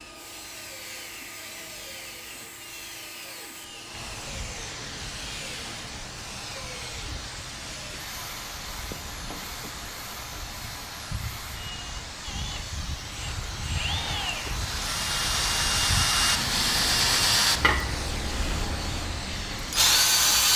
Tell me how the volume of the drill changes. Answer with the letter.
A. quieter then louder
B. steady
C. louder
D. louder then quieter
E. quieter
C.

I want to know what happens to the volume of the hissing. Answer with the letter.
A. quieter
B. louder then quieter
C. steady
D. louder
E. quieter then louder
D.